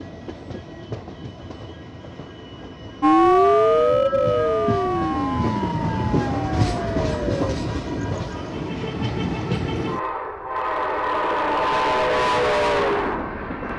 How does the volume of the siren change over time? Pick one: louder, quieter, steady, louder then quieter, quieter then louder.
quieter.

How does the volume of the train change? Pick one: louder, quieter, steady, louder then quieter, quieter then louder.
louder.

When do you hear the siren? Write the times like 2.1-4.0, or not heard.
3.0-7.5.